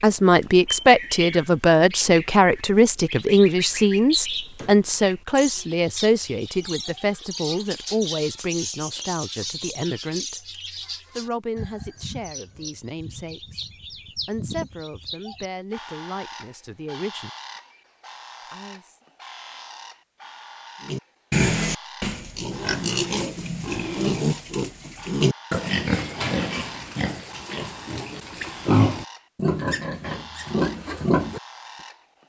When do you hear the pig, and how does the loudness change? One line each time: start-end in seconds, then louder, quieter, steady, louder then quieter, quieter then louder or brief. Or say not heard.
20.9-31.4 steady.